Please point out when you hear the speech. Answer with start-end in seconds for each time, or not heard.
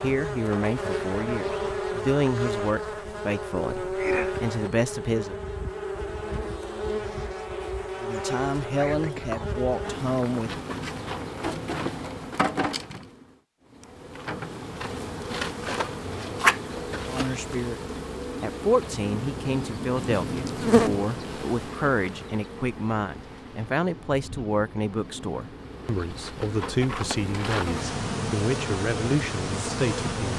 0.0-5.3, 8.0-10.7, 17.1-17.8, 18.4-30.3.